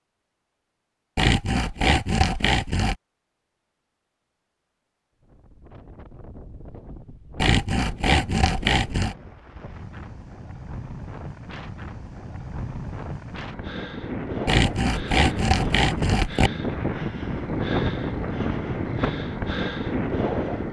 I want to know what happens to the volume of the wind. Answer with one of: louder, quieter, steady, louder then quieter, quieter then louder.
louder.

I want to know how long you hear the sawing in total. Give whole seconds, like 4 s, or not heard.
6 s.